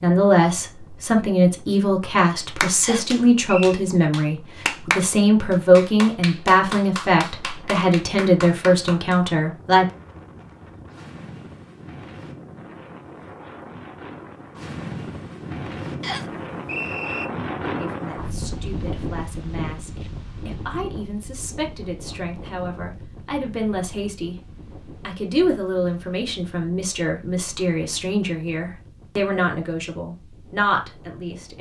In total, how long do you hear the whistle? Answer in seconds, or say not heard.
2 s.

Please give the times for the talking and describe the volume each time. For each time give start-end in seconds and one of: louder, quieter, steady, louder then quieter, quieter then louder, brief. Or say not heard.
0.0-9.8 steady
17.8-24.4 louder
25.1-31.5 steady.